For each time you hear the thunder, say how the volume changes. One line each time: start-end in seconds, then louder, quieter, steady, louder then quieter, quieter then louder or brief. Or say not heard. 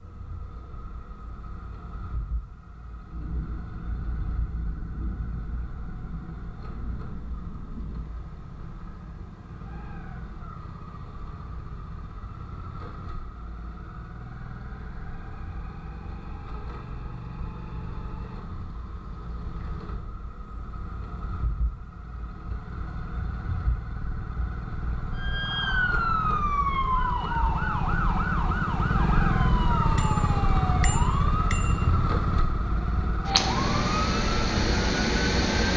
3.1-8.1 steady.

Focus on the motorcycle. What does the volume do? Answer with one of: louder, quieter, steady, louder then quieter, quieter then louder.
louder.